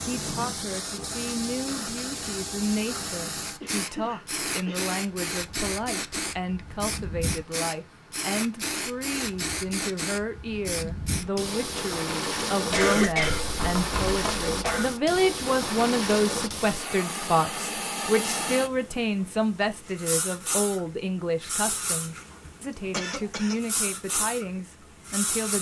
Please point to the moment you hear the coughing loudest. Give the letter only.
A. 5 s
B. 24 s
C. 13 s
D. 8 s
C.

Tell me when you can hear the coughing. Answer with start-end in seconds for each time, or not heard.
3.6-4.9, 12.7-14.9, 22.9-23.6.